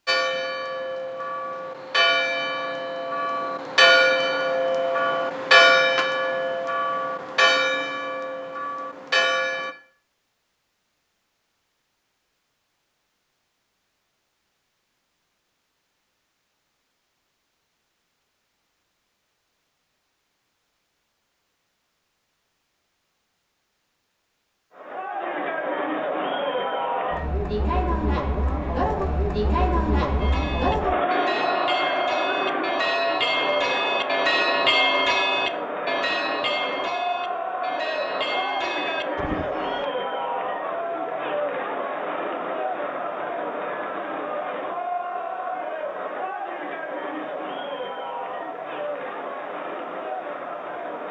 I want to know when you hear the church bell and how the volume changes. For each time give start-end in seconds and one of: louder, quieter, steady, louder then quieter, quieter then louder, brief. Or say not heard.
0.1-9.8 louder then quieter
30.2-39.9 louder then quieter.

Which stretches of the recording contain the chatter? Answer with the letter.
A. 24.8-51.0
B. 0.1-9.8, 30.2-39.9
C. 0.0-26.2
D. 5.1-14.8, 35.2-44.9
A.